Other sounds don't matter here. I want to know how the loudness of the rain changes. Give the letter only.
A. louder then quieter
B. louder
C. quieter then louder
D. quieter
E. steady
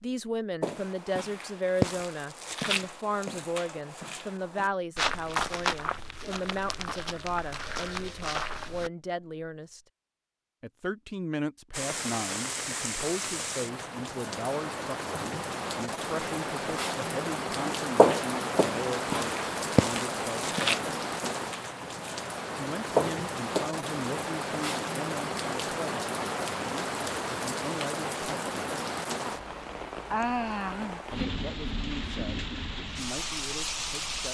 E.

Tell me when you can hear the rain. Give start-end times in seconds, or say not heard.
11.7-34.2.